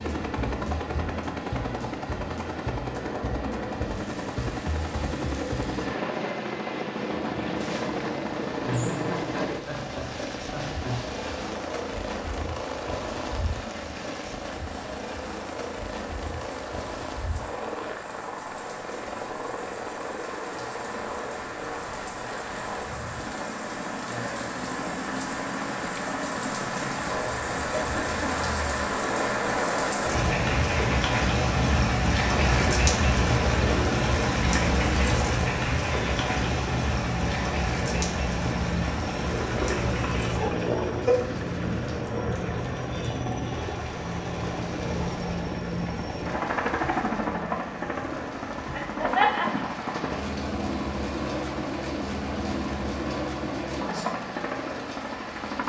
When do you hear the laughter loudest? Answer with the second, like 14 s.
49 s.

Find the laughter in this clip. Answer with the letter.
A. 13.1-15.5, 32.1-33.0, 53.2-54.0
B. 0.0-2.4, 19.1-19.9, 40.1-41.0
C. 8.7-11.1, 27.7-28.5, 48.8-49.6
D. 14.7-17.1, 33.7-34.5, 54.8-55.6
C.